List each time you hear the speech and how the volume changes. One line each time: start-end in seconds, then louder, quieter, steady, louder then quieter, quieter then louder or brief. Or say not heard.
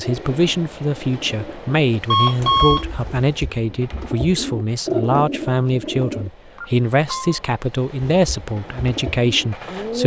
0.0-10.0 steady.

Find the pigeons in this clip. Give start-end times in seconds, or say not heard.
0.0-6.3, 8.0-10.0.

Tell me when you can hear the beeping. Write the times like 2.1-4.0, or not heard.
2.1-2.9, 6.5-7.4.